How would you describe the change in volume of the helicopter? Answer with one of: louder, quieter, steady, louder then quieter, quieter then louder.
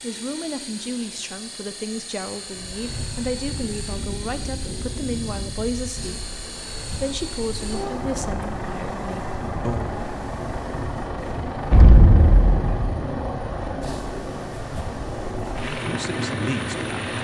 louder.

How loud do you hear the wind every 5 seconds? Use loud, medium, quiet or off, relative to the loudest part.
medium, medium, medium, loud.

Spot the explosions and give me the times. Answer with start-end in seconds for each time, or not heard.
11.7-13.0.